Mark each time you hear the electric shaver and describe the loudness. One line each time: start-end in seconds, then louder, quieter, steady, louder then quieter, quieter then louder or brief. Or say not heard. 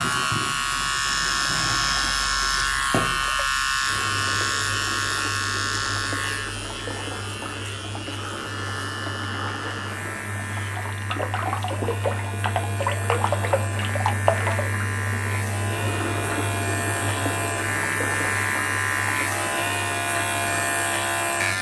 0.0-21.5 quieter then louder.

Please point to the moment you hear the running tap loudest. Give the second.
14 s.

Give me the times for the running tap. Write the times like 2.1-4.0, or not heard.
0.0-21.5.